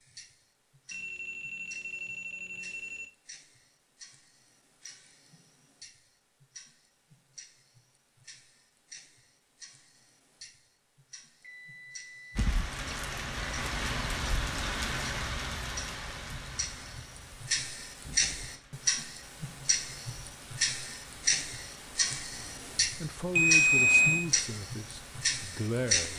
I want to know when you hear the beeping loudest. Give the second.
24 s.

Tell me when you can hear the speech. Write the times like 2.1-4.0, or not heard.
23.0-26.1.